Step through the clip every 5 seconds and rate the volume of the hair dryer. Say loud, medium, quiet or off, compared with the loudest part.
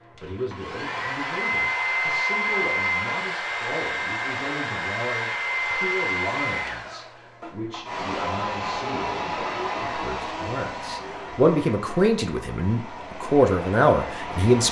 loud, loud, medium.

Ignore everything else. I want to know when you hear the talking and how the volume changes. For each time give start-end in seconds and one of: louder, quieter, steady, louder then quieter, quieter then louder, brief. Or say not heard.
0.1-14.6 louder.